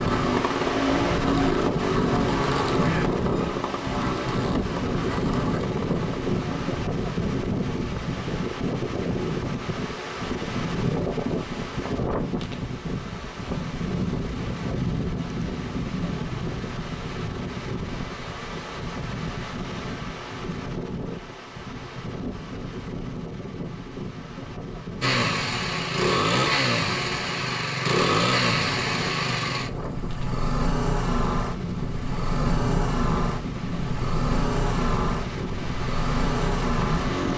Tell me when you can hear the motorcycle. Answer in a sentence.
The motorcycle can be heard from 0.0 to 6.8 s and from 25.0 to 37.3 s.